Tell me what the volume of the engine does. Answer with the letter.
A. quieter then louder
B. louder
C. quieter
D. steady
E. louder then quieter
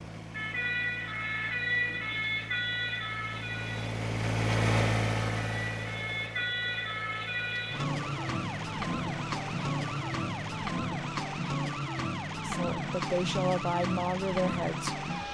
E.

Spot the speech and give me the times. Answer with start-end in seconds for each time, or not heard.
12.4-15.0.